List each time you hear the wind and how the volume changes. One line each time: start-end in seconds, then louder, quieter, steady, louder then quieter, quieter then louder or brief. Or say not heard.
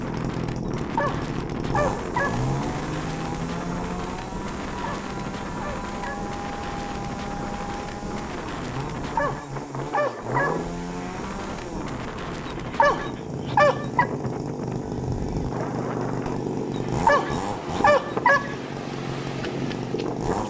0.0-20.4 steady.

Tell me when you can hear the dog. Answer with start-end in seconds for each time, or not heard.
0.7-2.5, 4.8-6.3, 9.1-10.7, 12.7-14.1, 16.8-18.6.